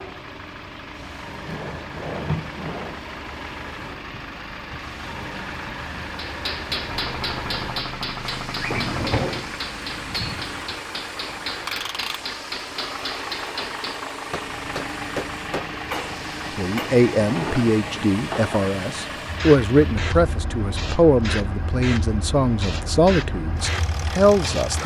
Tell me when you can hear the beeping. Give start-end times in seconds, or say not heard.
not heard.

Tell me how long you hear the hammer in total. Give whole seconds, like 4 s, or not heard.
11 s.